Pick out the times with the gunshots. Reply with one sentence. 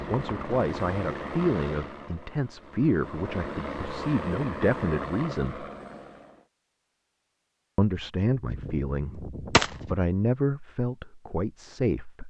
The gunshots can be heard from 8.4 to 10.1 s.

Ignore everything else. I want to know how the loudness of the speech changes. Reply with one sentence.
The volume of the speech stays about the same.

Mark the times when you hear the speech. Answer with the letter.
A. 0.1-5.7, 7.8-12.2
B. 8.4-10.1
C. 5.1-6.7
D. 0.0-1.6
A.